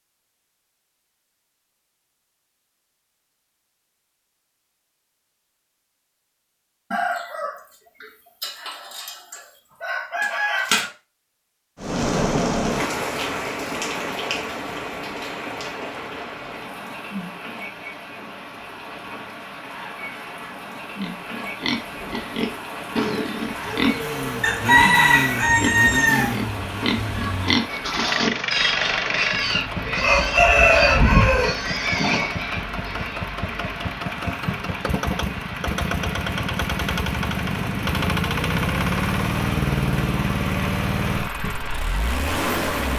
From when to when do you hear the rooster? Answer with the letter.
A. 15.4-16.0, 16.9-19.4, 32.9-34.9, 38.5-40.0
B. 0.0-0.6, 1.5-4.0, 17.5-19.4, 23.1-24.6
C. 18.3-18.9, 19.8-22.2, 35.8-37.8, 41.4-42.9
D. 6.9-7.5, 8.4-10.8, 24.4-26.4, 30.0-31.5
D.